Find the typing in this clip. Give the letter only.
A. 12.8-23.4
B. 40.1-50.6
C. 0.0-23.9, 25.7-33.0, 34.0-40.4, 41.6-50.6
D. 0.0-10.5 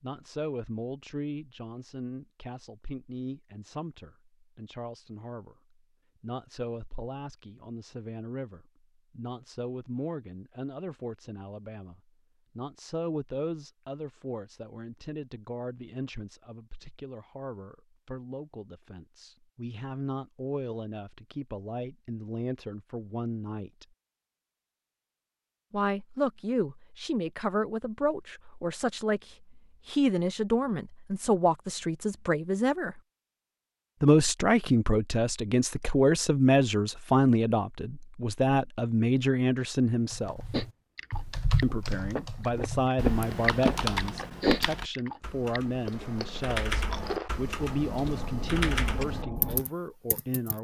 B.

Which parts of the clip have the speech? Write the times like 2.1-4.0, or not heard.
0.0-23.9, 25.7-33.0, 34.0-40.4, 41.6-50.6.